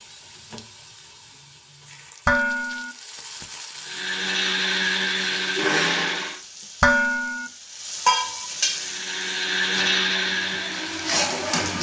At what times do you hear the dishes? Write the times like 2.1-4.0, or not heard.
2.2-3.0, 6.8-7.5.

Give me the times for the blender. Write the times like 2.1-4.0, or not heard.
3.8-6.4, 8.6-11.7.